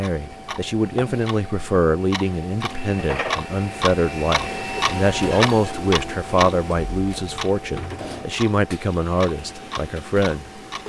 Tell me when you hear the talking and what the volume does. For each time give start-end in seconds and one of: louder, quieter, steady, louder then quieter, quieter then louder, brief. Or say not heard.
0.0-10.8 steady.